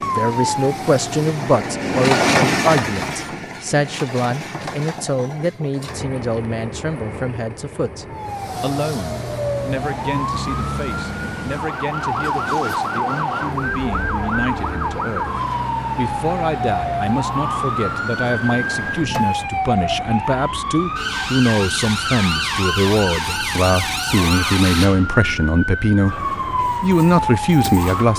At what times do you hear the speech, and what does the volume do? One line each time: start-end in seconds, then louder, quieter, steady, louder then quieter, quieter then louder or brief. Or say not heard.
0.0-15.3 quieter
15.9-28.1 louder.